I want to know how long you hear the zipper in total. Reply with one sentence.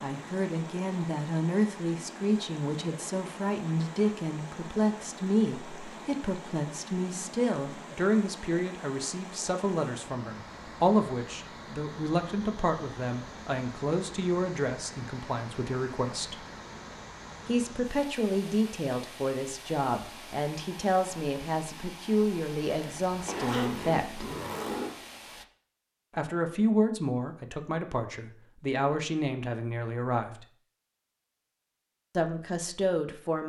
You can hear the zipper for 2 seconds altogether.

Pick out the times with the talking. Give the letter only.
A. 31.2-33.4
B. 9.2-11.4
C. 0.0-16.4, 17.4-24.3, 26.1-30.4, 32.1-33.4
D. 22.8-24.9
C.